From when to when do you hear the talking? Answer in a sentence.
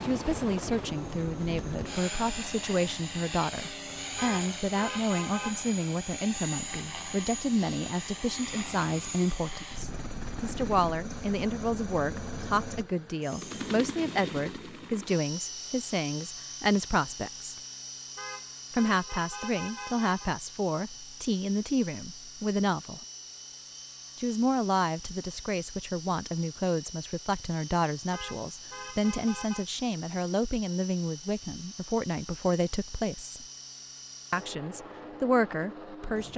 You can hear the talking from 0.0 to 17.5 s, from 18.7 to 23.0 s, from 24.1 to 33.5 s and from 34.3 to 36.3 s.